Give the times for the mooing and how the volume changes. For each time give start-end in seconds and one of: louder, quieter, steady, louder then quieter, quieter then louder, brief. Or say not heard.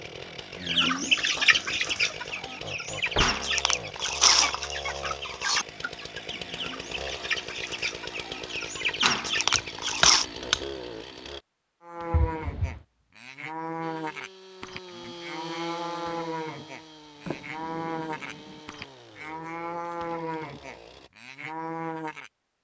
11.8-22.3 steady.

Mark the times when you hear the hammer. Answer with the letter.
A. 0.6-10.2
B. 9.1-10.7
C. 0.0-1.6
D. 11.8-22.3
B.